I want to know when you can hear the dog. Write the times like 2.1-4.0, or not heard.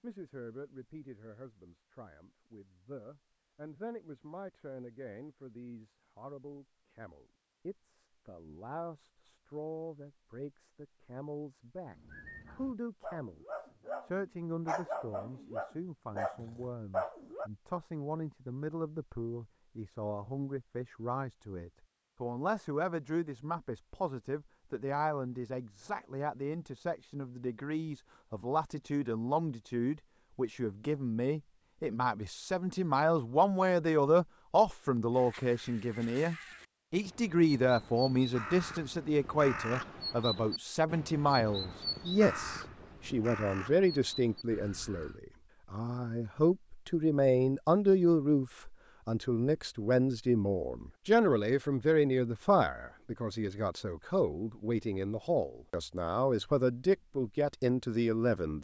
11.9-17.5.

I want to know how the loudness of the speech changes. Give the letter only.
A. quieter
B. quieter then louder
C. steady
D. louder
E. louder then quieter
D.